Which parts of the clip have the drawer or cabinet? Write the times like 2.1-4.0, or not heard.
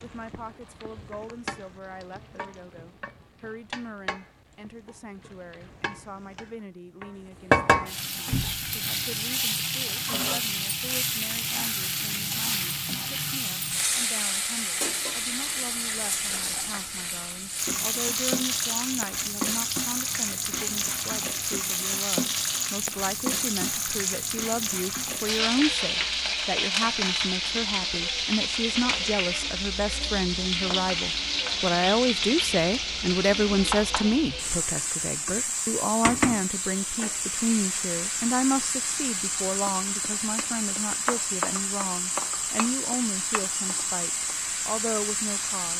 8.3-8.8.